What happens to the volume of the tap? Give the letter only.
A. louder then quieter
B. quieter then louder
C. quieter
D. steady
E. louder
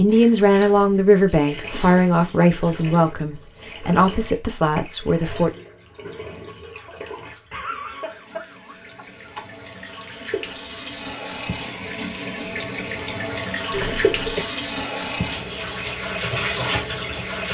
E.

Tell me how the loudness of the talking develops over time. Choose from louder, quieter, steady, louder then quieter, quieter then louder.
quieter.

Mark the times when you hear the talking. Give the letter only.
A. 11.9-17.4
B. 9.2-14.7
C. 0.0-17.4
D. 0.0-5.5
D.